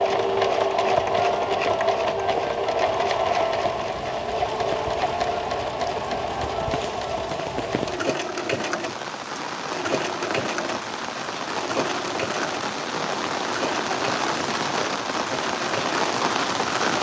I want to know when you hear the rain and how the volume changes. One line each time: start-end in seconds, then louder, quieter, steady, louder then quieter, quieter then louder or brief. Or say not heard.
0.0-16.9 louder.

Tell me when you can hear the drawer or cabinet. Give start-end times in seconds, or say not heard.
not heard.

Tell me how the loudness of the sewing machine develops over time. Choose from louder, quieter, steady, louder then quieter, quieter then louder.
quieter.